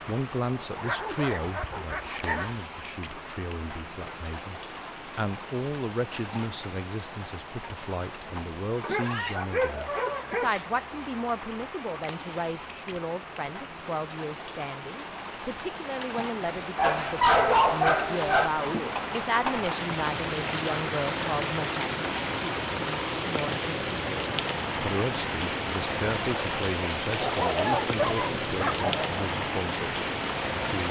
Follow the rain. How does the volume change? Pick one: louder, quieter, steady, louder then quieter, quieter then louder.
louder.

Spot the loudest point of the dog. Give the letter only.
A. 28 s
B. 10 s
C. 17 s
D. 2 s
C.